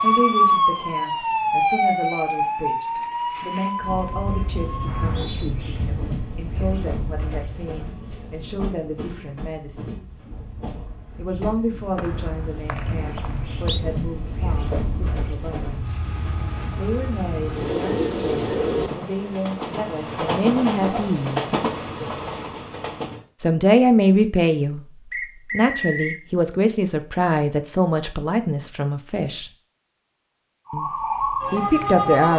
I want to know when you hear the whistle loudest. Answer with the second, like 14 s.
26 s.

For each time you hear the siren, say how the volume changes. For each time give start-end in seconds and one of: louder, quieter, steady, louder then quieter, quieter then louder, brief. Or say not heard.
0.0-5.2 quieter
30.6-32.3 brief.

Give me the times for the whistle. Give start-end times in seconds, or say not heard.
4.8-5.5, 11.9-13.8, 25.1-26.2.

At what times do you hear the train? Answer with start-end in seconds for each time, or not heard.
3.8-23.2.